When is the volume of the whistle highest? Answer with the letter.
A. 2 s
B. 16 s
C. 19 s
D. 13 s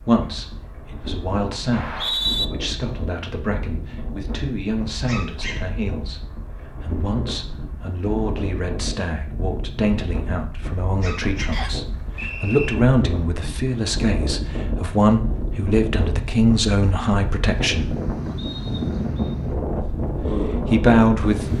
A.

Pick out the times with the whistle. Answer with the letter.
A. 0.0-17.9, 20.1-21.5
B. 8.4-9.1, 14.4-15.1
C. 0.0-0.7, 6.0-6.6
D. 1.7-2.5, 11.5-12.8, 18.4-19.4
D.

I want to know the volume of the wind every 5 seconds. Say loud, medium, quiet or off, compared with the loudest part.
medium, medium, medium, loud, loud.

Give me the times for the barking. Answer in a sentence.
The barking can be heard from 5.0 to 5.7 s and from 11.0 to 11.7 s.